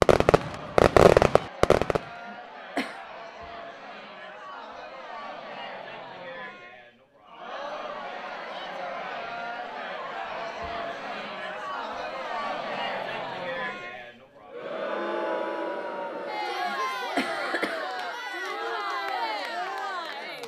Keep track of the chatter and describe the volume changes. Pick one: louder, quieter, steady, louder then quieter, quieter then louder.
louder.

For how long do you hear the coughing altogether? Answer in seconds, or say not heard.
3 s.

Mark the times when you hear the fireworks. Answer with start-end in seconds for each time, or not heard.
0.0-2.0.